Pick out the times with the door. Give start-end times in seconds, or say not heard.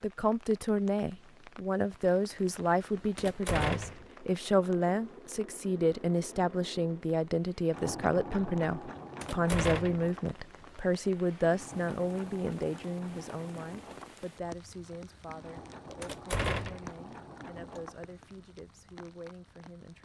3.1-4.0, 9.2-10.1, 16.0-16.9.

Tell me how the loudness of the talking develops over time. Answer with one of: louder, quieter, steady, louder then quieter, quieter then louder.
quieter.